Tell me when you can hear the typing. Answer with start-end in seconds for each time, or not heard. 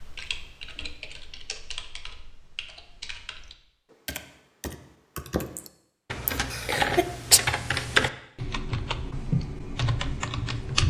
0.0-10.8.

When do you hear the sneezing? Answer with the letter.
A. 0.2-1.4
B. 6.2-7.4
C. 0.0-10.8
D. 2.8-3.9
B.